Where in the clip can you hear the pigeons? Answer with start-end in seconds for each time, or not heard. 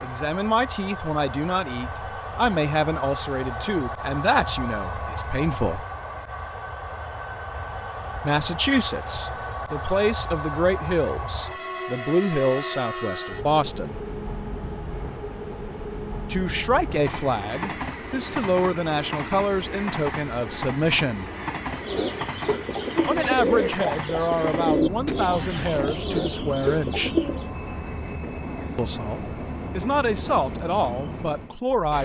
21.7-27.4.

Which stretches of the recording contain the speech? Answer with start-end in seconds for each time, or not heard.
0.0-5.8, 8.2-13.9, 16.3-21.3, 23.1-27.1, 28.8-32.0.